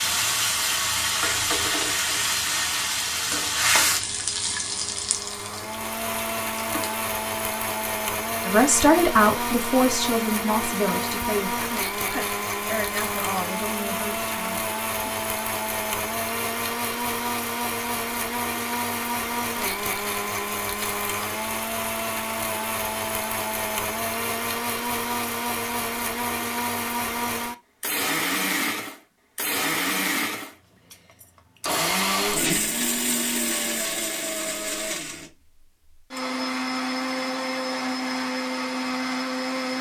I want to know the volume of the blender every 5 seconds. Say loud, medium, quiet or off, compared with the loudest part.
quiet, loud, loud, loud, loud, loud, loud, loud.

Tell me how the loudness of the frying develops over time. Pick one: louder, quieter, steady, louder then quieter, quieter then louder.
quieter.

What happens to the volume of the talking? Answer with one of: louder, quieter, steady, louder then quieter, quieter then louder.
quieter.